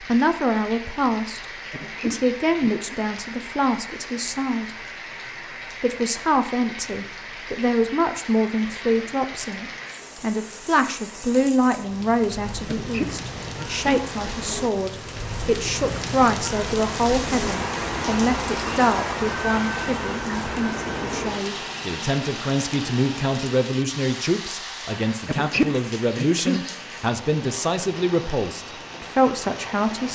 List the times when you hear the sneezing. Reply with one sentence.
You can hear the sneezing from 1.7 to 2.9 s, from 12.7 to 13.8 s and from 25.2 to 26.6 s.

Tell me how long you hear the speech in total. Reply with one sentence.
You can hear the speech for 29 seconds altogether.